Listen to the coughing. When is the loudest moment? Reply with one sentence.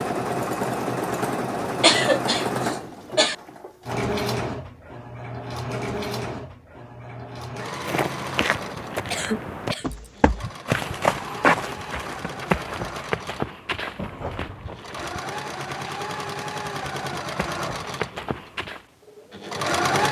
The loudest moment of the coughing is at 2 seconds.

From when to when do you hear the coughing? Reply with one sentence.
You can hear the coughing from 1.6 to 3.4 s, from 9.1 to 10.8 s and from 13.9 to 14.8 s.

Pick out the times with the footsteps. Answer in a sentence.
The footsteps can be heard from 7.8 to 18.9 s.